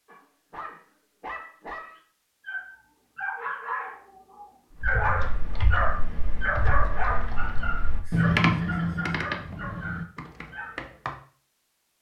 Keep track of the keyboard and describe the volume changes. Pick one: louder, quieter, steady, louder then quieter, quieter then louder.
louder then quieter.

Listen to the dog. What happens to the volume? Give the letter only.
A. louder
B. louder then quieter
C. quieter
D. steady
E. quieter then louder
B.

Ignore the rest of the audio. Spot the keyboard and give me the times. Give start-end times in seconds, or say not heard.
4.8-11.2.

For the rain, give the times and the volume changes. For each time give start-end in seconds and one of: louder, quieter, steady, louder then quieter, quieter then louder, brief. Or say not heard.
not heard.